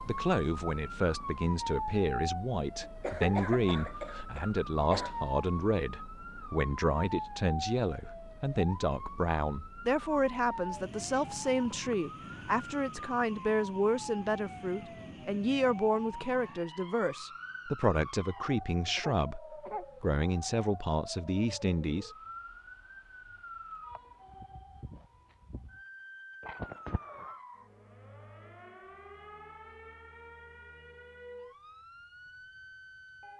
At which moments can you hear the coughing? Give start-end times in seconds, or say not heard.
2.9-5.2, 18.4-19.9, 26.4-27.4.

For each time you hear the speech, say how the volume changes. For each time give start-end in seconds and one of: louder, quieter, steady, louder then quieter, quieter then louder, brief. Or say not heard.
0.1-22.1 steady.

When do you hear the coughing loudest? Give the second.
3 s.